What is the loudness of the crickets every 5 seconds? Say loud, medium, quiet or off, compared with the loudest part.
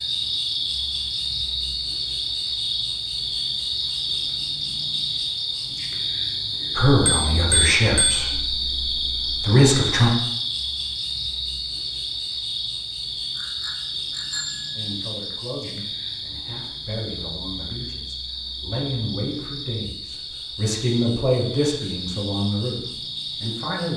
loud, loud, loud, medium, medium.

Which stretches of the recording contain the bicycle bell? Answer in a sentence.
You can hear the bicycle bell from 7.0 to 8.2 s and from 13.3 to 14.9 s.